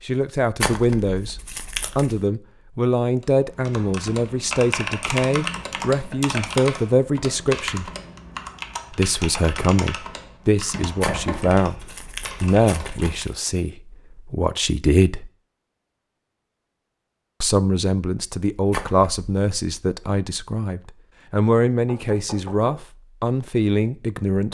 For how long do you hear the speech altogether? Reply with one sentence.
The speech can be heard for 21 seconds in total.